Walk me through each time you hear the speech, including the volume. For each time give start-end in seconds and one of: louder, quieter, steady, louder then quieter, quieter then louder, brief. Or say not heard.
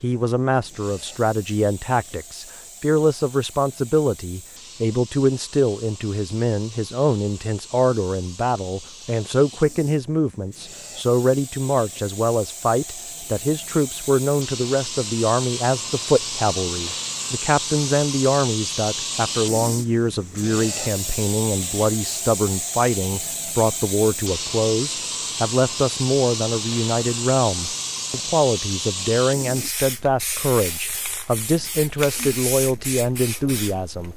0.0-34.1 steady.